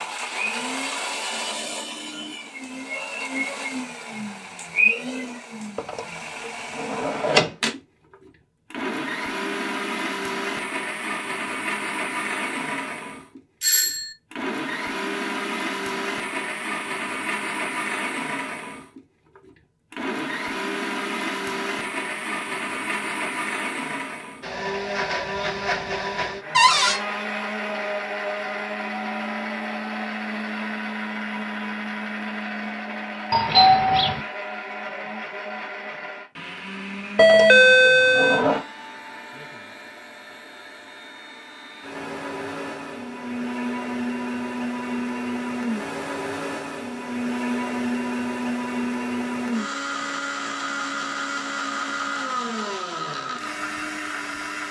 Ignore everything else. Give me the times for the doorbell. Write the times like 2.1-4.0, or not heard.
13.6-14.1, 33.3-34.2, 37.1-38.5.